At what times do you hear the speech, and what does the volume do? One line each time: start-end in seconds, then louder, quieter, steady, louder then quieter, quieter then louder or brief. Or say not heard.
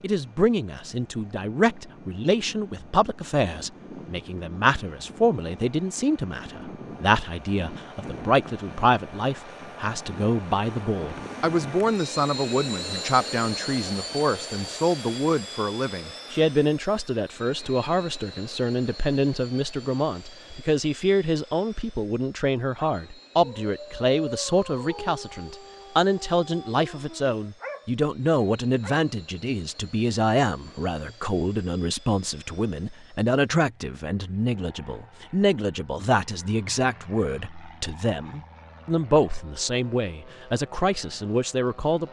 0.0-42.0 steady.